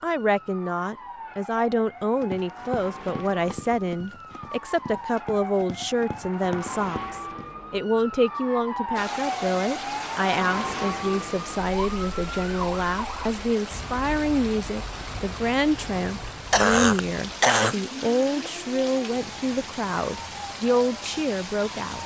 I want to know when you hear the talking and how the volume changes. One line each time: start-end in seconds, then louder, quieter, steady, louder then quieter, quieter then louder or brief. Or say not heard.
0.0-22.0 steady.